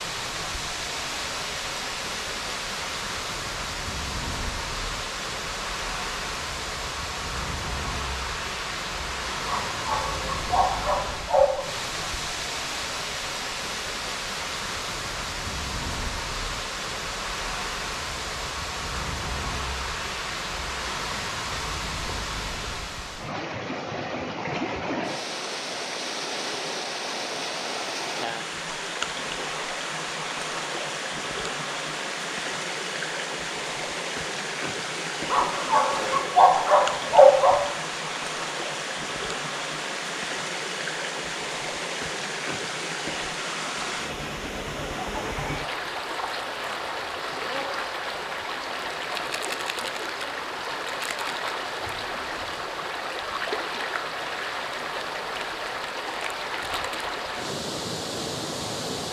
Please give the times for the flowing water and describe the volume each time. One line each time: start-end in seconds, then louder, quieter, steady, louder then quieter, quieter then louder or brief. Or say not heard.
0.0-59.0 steady.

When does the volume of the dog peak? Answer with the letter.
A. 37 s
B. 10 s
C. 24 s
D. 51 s
A.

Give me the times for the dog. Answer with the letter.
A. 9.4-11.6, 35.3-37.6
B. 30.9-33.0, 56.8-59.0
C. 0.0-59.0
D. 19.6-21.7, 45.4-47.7
A.